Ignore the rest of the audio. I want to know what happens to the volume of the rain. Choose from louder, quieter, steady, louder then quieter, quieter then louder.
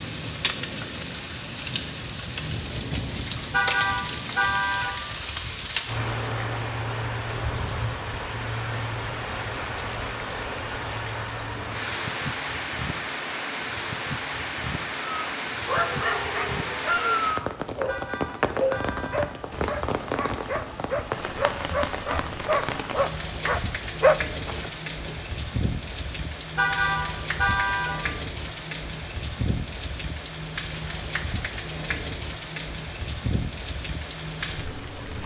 steady.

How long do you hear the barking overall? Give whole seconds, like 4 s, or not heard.
10 s.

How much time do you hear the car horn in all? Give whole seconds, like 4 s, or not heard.
4 s.